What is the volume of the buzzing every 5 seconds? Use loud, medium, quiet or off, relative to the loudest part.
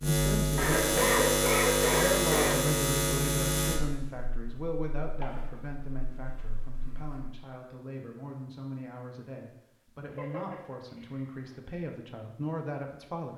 loud, quiet, off.